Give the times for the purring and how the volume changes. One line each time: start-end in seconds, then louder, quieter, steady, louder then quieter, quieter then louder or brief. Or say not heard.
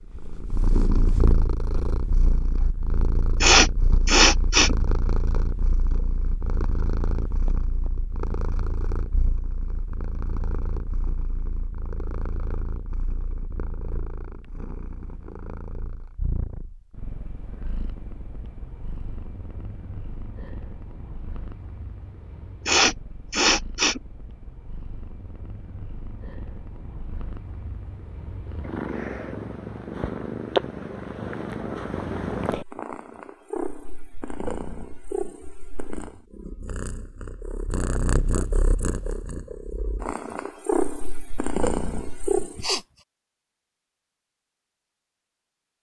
0.1-42.8 quieter then louder.